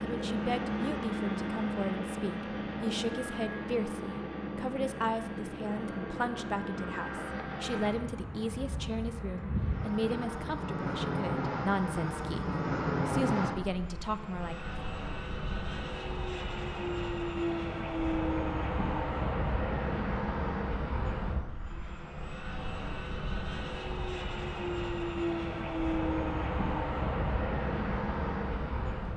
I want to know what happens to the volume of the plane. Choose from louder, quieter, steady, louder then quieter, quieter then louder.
steady.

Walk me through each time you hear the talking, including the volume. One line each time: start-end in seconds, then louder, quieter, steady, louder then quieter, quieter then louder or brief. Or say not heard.
0.0-14.8 steady.